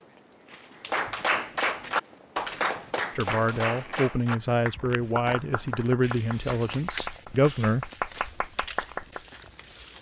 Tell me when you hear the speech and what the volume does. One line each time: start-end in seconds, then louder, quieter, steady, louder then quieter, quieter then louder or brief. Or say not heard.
3.1-7.8 steady.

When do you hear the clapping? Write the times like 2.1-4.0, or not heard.
0.8-9.2.